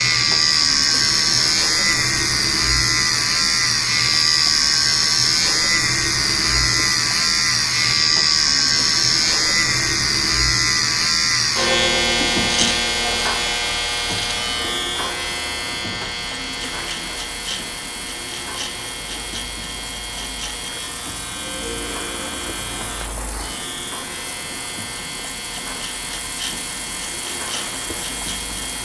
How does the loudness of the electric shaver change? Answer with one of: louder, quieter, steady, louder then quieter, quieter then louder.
quieter.